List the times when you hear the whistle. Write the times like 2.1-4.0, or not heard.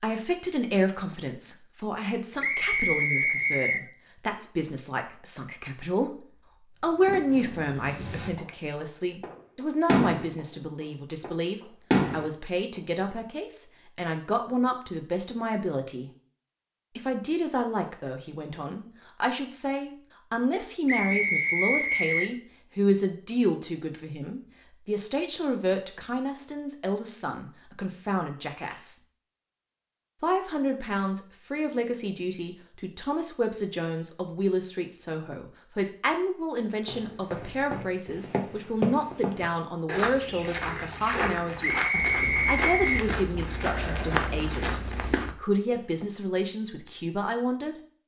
2.4-3.9, 20.9-22.4, 41.6-43.1.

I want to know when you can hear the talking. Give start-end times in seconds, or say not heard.
0.0-16.1, 16.9-28.9, 30.2-47.8.